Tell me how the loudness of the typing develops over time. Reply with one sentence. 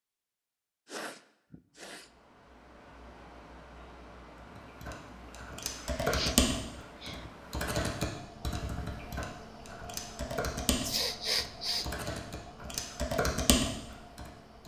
The loudness of the typing goes down, then up.